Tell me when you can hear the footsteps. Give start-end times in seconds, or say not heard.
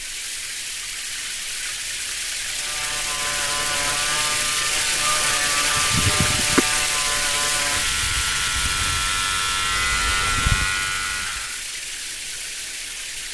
not heard.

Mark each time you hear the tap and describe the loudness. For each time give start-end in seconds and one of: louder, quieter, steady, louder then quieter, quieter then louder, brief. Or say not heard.
0.0-13.3 louder then quieter.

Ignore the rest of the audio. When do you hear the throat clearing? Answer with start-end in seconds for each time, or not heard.
5.8-6.7.